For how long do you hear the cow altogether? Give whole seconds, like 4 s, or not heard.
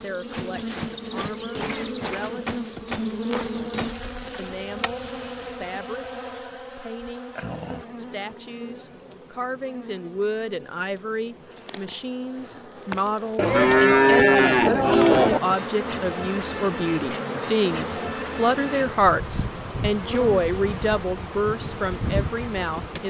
2 s.